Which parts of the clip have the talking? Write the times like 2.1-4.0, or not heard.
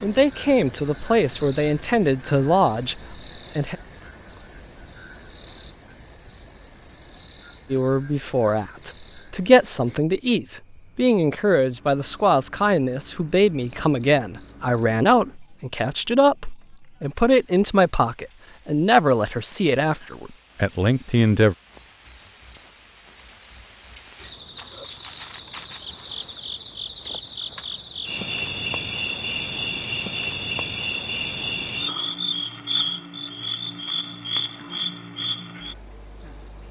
0.0-3.8, 7.7-21.6.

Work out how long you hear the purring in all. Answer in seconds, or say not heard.
not heard.